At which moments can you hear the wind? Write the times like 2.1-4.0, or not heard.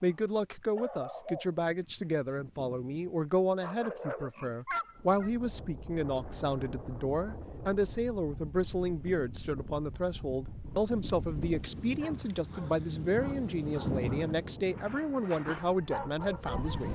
4.8-16.8.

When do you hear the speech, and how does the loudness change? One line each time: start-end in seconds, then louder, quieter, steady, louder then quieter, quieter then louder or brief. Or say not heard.
0.0-16.8 steady.